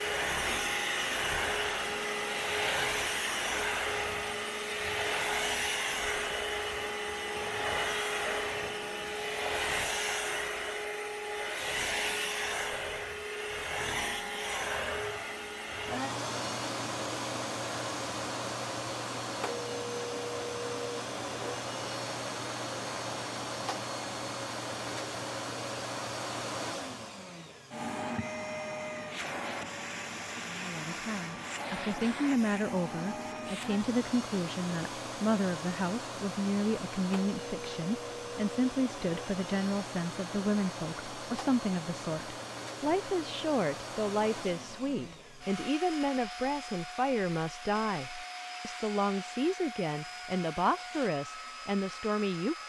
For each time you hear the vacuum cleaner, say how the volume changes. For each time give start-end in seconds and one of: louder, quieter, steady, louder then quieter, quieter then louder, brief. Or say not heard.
0.0-52.6 quieter.